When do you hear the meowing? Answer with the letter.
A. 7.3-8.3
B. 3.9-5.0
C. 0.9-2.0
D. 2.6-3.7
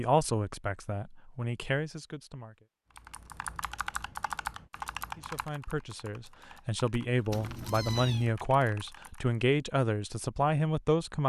A.